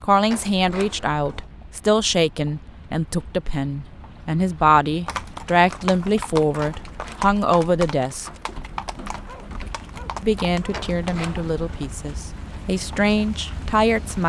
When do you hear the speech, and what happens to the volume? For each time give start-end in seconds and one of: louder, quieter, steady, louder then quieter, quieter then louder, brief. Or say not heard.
0.0-8.3 steady
10.2-14.2 quieter then louder.